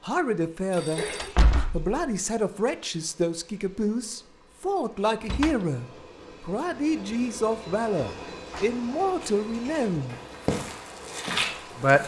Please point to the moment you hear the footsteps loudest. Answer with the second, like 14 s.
11 s.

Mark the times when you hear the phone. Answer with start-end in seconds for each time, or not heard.
0.7-1.4.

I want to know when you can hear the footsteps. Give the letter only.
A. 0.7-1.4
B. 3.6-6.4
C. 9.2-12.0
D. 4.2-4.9
C.